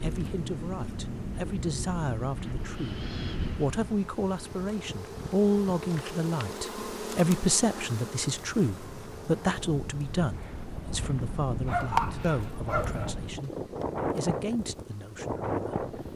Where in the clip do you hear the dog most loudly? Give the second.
12 s.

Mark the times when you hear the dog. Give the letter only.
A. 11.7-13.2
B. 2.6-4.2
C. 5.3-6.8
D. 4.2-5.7
A.